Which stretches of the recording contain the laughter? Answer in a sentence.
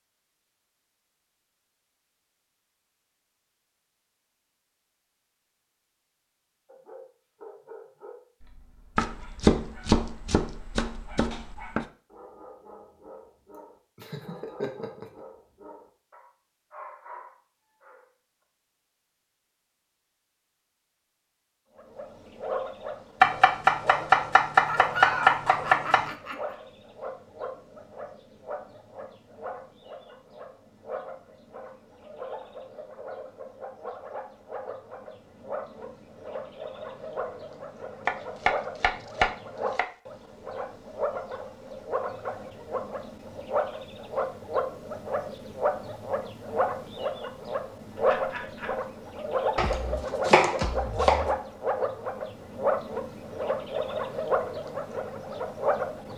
The laughter can be heard from 13.9 to 15.1 s, from 24.6 to 26.6 s and from 48.0 to 48.8 s.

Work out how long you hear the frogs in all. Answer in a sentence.
You can hear the frogs for 34 seconds altogether.